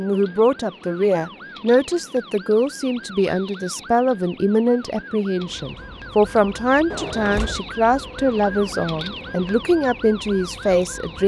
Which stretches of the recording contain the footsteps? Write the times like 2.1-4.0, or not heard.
not heard.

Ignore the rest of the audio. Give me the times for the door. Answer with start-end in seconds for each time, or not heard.
6.9-7.7.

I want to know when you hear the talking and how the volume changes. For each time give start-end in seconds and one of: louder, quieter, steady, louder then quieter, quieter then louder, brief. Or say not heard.
0.0-11.2 steady.